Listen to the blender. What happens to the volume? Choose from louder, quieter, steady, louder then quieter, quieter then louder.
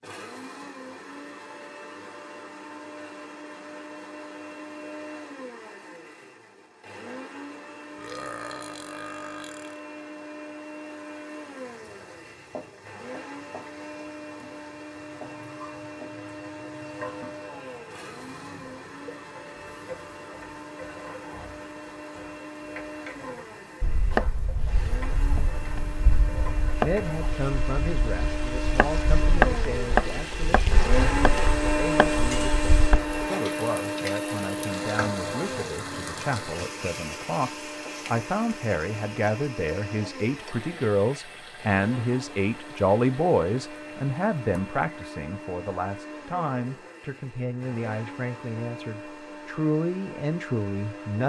louder then quieter.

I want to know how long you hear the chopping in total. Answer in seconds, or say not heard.
9 s.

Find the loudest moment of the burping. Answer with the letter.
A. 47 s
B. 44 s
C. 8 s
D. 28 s
C.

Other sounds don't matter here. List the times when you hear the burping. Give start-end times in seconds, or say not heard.
8.0-9.8.